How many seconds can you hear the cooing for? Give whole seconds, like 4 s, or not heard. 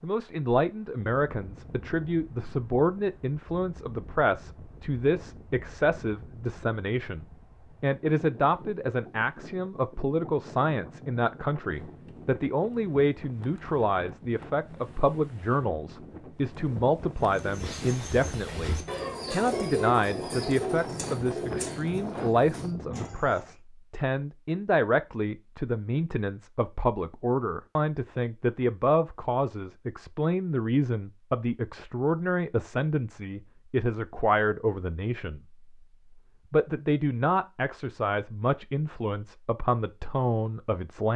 6 s.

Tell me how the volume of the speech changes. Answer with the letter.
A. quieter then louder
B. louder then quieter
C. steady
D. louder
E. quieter
C.